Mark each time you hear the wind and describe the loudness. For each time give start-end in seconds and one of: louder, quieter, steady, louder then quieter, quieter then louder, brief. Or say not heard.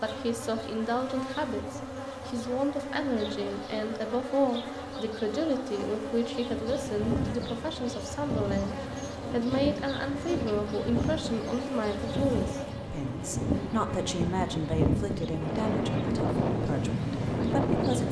6.4-18.0 louder.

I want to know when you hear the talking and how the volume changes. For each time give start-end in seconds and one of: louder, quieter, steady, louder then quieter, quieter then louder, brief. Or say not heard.
0.0-18.0 steady.